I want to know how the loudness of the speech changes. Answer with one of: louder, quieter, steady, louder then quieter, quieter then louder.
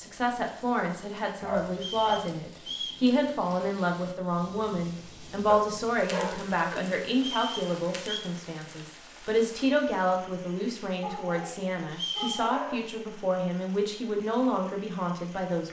steady.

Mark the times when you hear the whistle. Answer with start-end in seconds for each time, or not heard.
1.8-3.0, 7.2-8.2, 11.9-12.5.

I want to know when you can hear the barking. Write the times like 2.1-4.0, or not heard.
1.4-2.3, 5.5-7.0, 11.0-12.8.